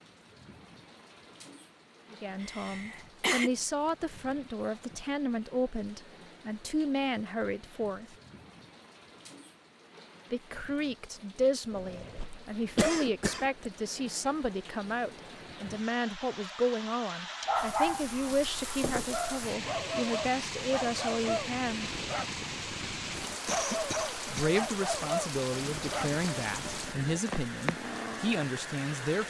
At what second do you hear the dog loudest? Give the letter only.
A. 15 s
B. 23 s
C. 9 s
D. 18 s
D.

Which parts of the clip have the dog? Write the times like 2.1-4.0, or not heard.
17.4-27.2.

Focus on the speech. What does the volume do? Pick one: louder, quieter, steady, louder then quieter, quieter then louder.
steady.